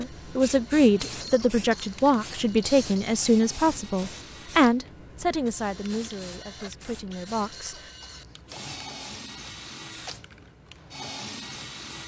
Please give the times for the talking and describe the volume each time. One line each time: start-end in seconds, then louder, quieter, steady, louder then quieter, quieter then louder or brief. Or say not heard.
0.0-7.8 quieter.